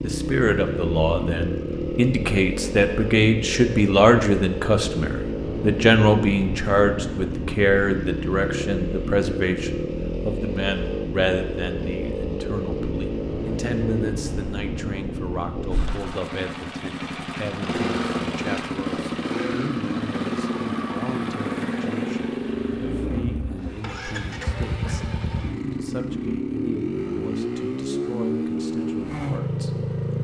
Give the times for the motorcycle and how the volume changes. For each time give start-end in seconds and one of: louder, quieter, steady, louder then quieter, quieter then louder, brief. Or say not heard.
0.0-30.1 steady.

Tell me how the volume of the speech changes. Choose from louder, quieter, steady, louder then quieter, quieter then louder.
quieter.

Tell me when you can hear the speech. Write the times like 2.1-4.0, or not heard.
0.0-30.0.